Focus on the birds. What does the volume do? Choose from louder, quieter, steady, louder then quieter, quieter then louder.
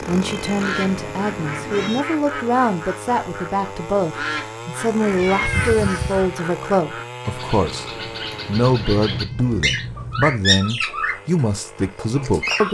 louder.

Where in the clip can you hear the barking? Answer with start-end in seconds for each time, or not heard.
not heard.